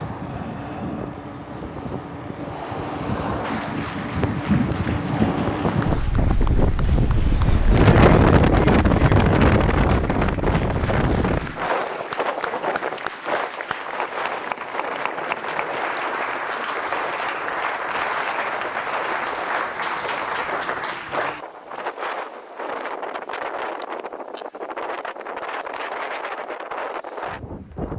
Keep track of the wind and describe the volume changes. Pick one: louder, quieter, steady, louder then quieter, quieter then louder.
louder then quieter.